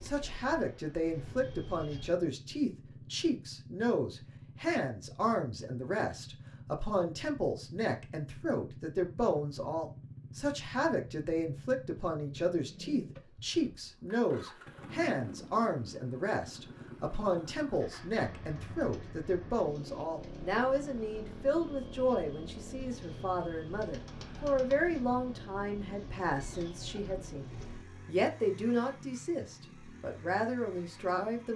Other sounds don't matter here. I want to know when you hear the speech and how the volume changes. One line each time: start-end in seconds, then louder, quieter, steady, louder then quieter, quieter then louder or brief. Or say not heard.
0.0-31.5 steady.